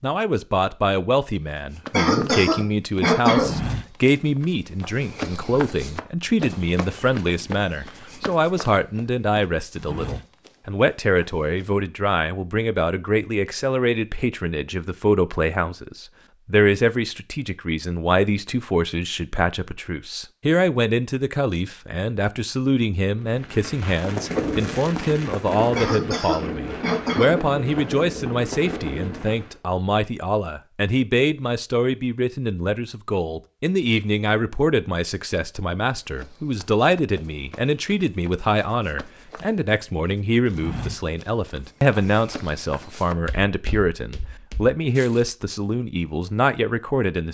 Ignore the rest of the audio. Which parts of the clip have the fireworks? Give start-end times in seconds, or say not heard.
23.1-29.6.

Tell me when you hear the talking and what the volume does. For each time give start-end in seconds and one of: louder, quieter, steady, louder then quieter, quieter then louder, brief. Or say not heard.
0.0-47.2 steady.